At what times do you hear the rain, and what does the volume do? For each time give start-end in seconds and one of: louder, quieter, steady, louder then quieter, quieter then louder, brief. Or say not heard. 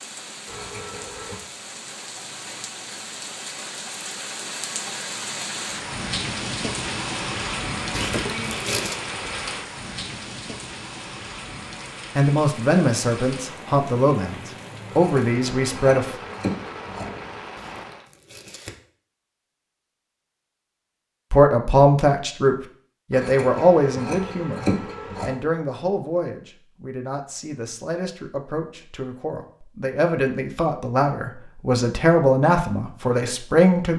0.0-18.1 louder then quieter.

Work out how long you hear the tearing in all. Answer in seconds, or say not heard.
2 s.